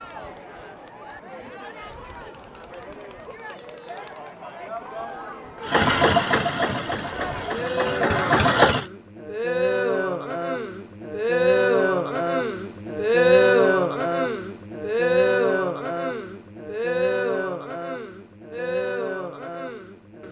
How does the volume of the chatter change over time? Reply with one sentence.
The loudness of the chatter goes up, then down.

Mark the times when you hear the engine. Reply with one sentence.
The engine can be heard from 5.7 to 8.8 s.